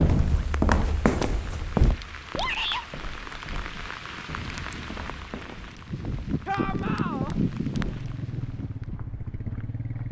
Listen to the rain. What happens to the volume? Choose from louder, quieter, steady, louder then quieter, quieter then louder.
louder.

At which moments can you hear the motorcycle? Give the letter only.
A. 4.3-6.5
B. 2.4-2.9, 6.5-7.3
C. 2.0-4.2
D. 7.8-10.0
D.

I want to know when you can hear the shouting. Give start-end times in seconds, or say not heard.
2.4-2.9, 6.5-7.3.